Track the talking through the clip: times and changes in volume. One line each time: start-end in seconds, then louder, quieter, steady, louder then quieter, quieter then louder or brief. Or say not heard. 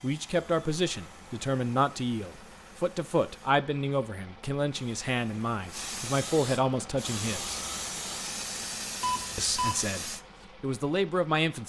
0.0-7.6 steady
9.3-11.6 brief.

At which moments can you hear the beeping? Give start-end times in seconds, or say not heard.
9.0-9.8.